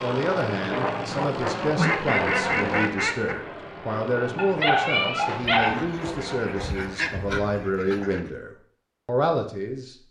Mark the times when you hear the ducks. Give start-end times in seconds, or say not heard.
1.8-3.4, 5.4-8.2.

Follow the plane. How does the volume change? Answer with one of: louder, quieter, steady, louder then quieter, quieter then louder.
quieter.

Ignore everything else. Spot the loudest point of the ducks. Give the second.
2 s.